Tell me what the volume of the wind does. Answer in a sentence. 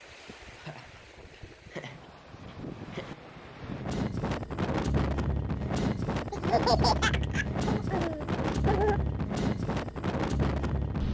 The volume of the wind goes up.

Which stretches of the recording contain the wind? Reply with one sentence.
The wind can be heard from 0.0 to 11.0 s.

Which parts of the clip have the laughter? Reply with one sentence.
The laughter can be heard from 0.6 to 3.1 s and from 6.3 to 9.0 s.